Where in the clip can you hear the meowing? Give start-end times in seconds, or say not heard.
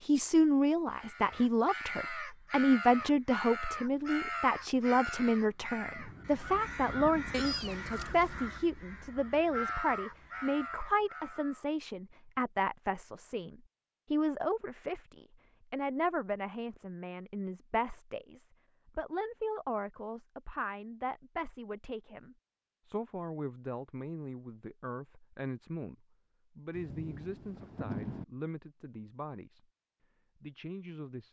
7.3-8.3.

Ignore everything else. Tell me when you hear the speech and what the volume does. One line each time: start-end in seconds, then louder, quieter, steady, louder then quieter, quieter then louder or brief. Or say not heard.
0.1-29.6 quieter
30.4-31.2 brief.